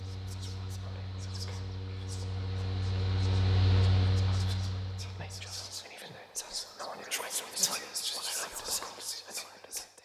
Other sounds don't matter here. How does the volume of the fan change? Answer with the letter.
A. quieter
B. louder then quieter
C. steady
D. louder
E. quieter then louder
B.